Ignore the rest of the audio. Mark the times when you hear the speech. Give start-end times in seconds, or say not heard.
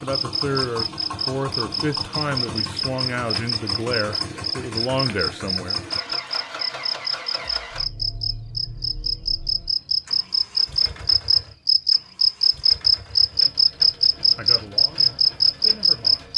0.0-5.8, 14.3-16.2.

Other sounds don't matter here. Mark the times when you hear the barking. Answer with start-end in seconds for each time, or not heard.
not heard.